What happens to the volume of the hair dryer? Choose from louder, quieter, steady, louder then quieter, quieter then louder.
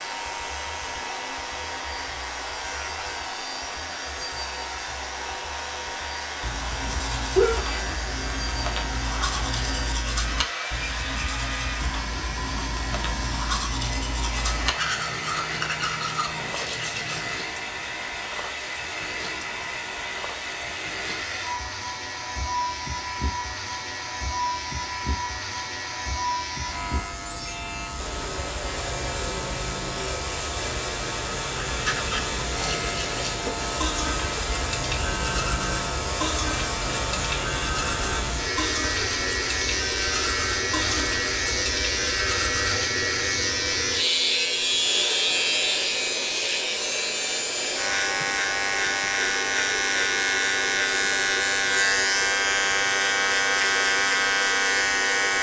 steady.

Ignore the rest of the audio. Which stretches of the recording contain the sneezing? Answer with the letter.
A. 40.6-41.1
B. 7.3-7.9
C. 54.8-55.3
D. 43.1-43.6
B.